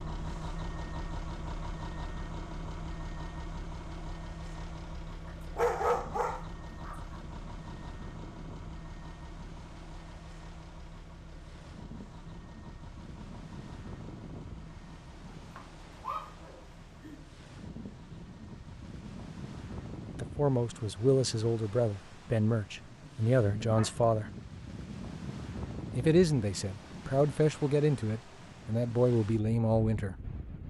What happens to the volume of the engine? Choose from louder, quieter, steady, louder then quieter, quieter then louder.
quieter.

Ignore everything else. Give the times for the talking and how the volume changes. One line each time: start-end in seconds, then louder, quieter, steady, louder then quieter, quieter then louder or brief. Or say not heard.
20.1-24.3 quieter then louder
25.9-30.1 louder.